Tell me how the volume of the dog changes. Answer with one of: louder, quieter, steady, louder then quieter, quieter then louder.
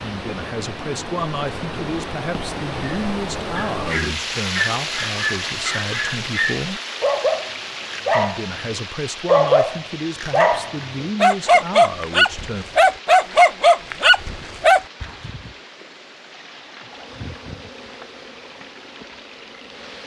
louder.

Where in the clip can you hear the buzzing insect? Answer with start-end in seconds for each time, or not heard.
16.8-20.0.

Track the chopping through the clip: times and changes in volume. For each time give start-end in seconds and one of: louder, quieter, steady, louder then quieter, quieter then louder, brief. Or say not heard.
not heard.